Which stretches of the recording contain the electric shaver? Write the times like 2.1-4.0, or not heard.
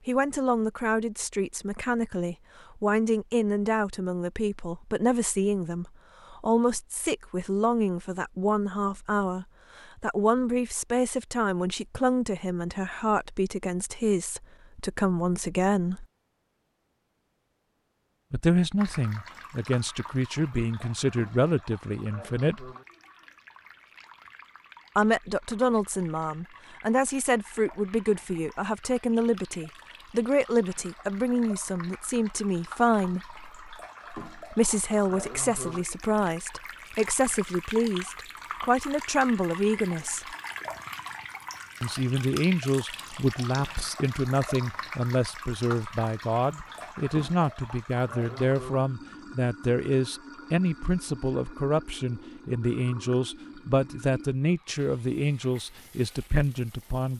not heard.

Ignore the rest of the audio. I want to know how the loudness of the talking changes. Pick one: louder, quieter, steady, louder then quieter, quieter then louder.
steady.